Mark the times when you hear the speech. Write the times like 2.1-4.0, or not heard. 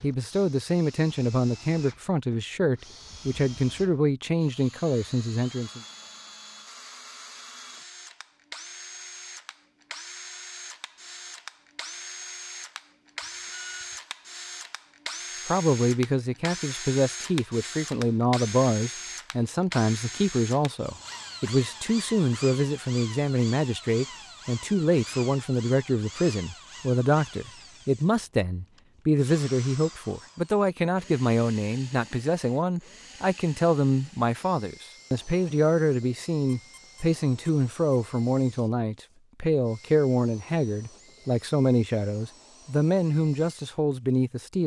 0.0-5.8, 15.4-44.6.